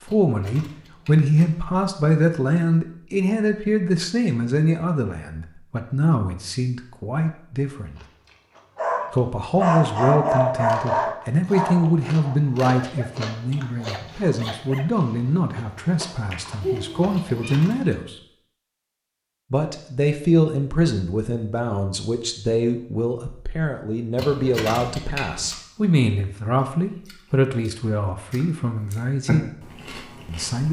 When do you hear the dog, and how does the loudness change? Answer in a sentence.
The dog can be heard from 8.8 to 14.9 s, getting quieter.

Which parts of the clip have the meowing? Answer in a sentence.
The meowing can be heard from 16.6 to 17.6 s.